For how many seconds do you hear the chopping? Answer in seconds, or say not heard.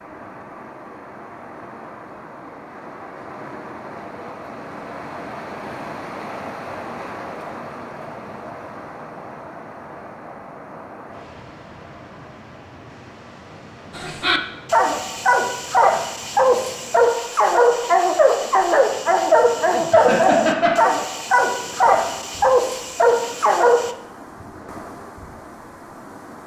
not heard.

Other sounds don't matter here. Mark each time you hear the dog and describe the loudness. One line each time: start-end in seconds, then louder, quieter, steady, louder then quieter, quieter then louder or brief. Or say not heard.
13.9-23.9 steady.